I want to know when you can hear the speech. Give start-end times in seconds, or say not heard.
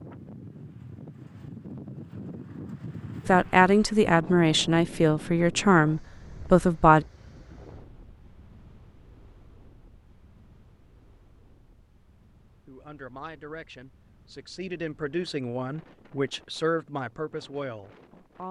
3.2-7.0, 12.7-18.4.